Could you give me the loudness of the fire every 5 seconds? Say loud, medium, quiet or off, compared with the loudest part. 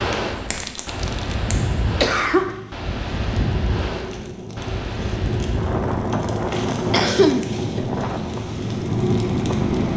medium, loud.